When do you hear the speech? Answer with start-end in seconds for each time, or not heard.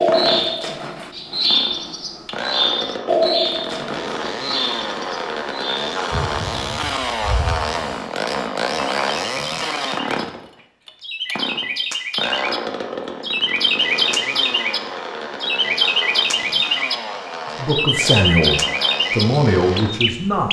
17.6-20.4.